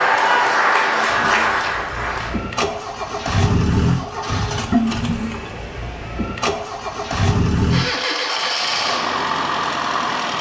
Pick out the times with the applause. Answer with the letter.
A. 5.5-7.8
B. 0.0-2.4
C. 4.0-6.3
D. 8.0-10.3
B.